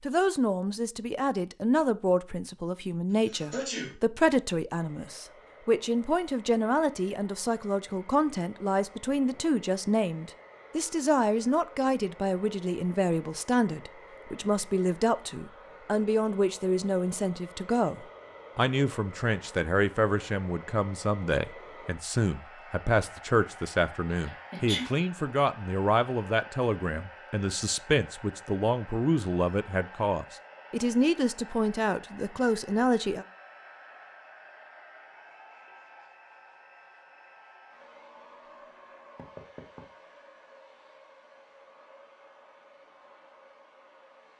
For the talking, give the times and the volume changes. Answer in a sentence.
You can hear the talking from 0.0 to 33.2 s, at a steady volume.